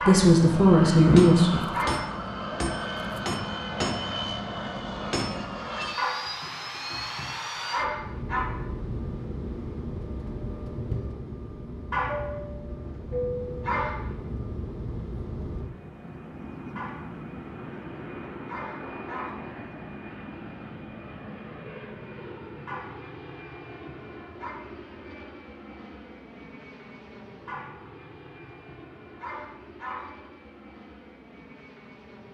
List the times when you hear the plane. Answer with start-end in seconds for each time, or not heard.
0.2-32.2.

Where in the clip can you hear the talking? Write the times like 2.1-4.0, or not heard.
0.1-1.6.